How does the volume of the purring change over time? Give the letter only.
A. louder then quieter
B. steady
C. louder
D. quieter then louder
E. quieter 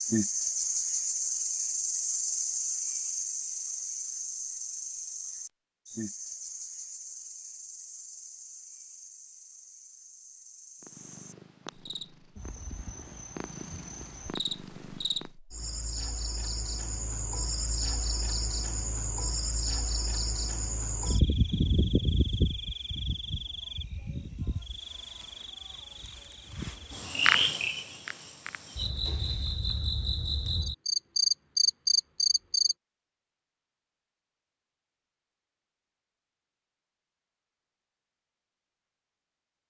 D.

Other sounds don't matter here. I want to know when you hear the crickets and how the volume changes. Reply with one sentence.
You can hear the crickets from 0.0 to 32.8 s, getting quieter then louder.